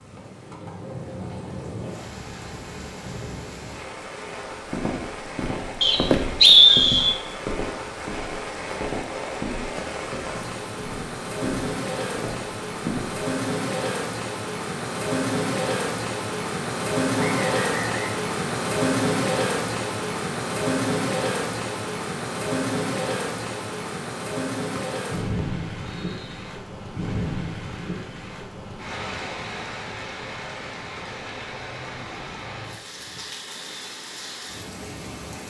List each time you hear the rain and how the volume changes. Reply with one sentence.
You can hear the rain from 0.0 to 35.4 s, getting louder then quieter.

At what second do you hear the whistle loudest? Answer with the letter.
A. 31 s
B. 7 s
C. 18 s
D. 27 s
B.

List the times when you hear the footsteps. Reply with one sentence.
The footsteps can be heard from 4.5 to 13.2 s.